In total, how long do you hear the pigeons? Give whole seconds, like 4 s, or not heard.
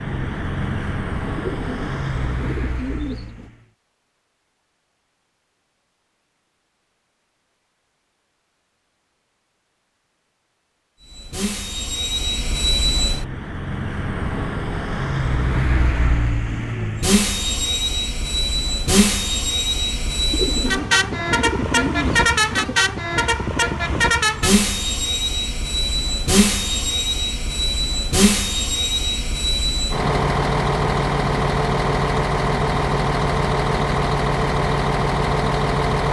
5 s.